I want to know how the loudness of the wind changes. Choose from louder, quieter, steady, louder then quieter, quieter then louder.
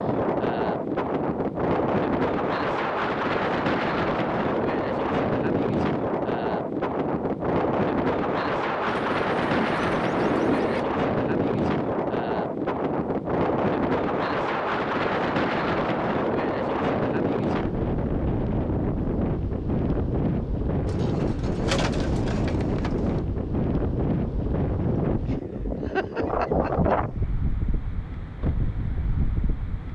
steady.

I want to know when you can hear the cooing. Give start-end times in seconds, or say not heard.
8.8-10.8, 20.9-23.2.